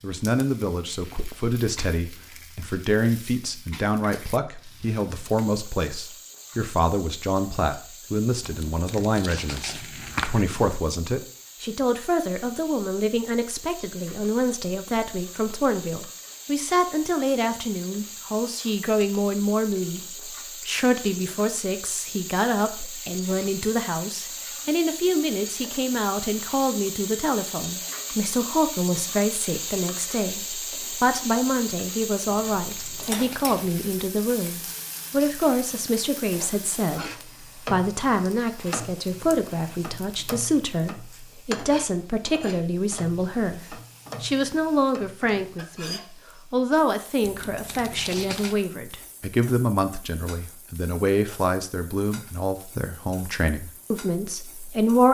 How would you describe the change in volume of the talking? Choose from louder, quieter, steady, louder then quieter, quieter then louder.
steady.